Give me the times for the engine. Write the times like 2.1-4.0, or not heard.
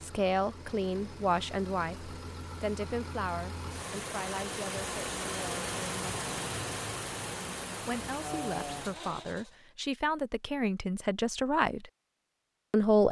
0.0-9.6.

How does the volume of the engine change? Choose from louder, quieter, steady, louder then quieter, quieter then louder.
louder.